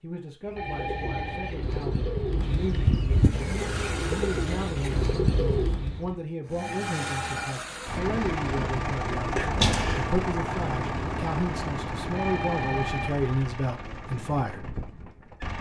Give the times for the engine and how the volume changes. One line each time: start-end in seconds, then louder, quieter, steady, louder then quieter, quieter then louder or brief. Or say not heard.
3.1-5.2 brief
6.5-15.5 quieter.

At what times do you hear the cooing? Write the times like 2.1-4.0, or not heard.
0.5-6.2.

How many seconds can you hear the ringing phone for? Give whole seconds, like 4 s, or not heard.
3 s.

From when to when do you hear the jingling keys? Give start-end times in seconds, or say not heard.
9.3-10.1.